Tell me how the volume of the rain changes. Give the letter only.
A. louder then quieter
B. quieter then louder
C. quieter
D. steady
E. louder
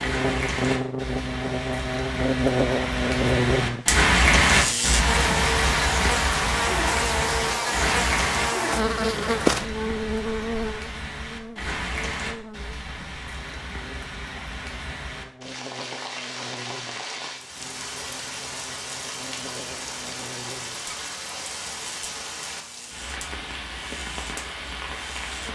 C.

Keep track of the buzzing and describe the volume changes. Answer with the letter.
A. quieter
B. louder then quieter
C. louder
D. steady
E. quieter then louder
A.